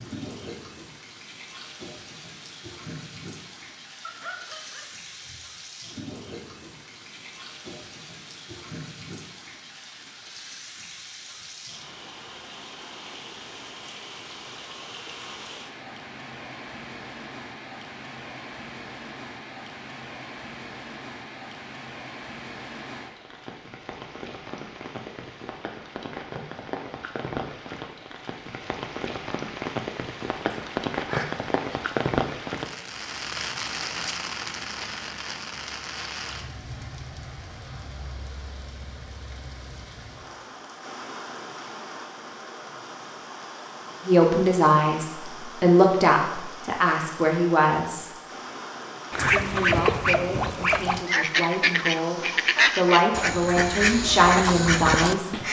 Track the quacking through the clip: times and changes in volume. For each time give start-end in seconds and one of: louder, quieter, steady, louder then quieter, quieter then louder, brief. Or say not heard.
49.1-55.4 steady.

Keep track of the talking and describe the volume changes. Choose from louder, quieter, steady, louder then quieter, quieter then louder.
quieter then louder.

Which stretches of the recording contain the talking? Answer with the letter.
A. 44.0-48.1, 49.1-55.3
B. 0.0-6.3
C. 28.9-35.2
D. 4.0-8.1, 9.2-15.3
A.